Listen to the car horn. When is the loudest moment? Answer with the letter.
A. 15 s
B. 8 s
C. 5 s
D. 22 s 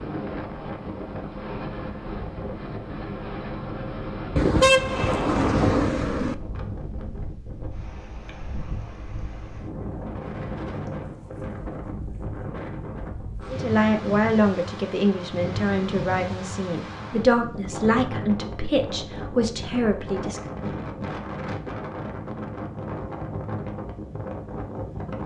C.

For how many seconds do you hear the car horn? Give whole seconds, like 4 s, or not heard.
2 s.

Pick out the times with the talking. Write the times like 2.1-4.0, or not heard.
13.5-20.6.